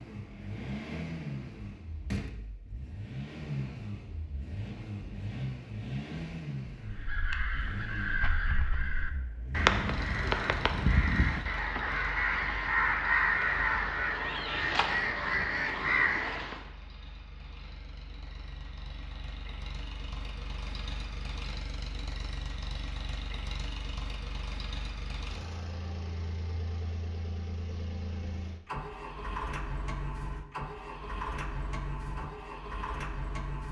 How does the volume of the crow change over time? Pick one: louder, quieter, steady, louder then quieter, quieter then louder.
louder.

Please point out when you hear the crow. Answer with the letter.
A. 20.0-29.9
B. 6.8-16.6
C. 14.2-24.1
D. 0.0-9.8
B.